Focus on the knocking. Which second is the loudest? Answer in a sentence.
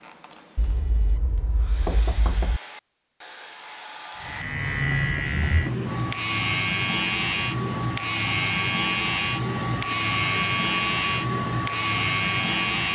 The loudest moment of the knocking is at 2 seconds.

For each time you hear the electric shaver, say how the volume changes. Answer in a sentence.
The electric shaver can be heard from 4.2 to 12.9 s, at a steady volume.